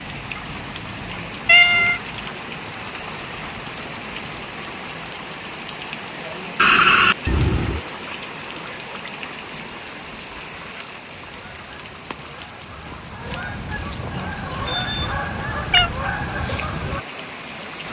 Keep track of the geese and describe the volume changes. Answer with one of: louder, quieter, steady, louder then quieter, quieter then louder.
louder.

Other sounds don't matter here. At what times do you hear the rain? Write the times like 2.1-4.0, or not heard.
0.0-17.8.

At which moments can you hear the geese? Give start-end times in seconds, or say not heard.
10.3-17.1.